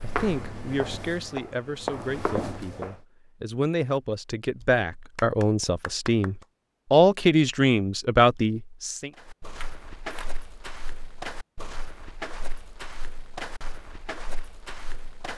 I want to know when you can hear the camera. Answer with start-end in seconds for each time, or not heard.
9.6-10.3.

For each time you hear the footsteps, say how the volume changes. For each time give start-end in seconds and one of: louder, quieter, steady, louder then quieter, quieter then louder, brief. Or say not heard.
0.0-3.0 brief
9.2-15.3 steady.